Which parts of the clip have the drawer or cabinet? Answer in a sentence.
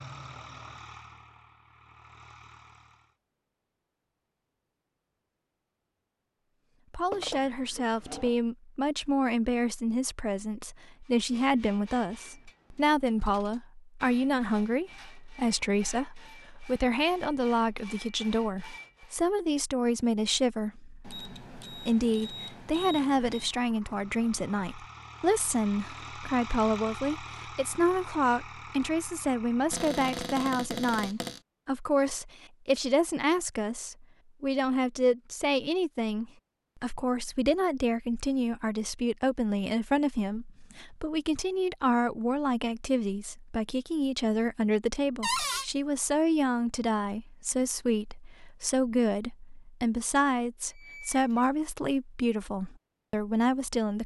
You can hear the drawer or cabinet from 7.1 to 8.3 s, from 29.7 to 31.4 s and from 45.2 to 45.6 s.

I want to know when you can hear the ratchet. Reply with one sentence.
You can't hear the ratchet here.